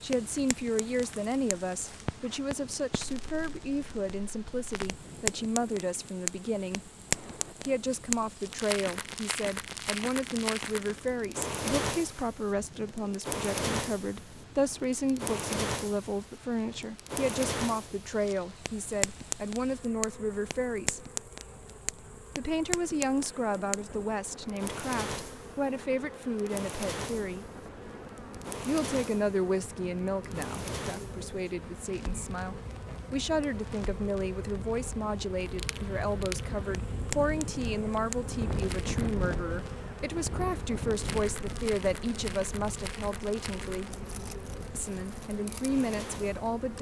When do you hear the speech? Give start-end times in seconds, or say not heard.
0.0-6.9, 7.7-21.0, 22.4-27.4, 28.6-43.9, 44.7-46.7.